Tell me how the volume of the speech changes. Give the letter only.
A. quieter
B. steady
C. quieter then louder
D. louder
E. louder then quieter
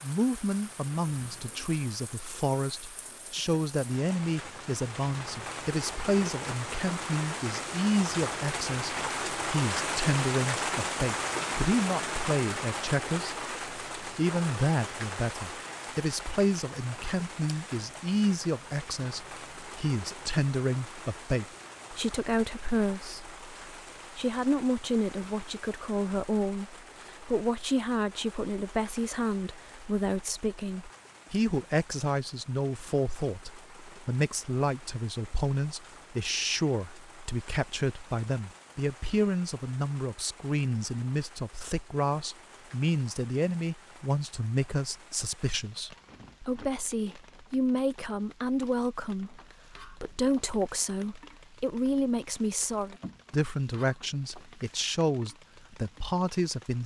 B.